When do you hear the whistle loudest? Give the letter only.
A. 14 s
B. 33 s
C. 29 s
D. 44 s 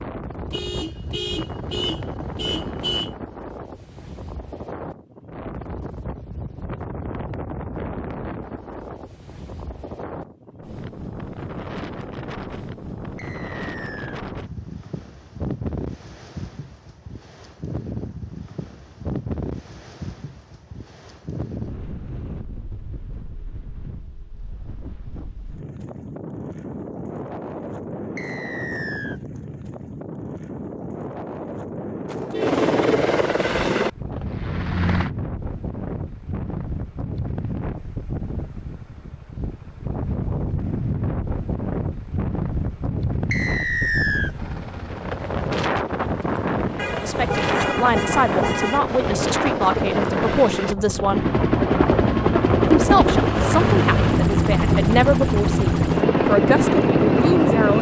D.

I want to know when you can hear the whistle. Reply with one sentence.
The whistle can be heard from 13.2 to 14.2 s, from 28.1 to 29.2 s and from 43.3 to 44.4 s.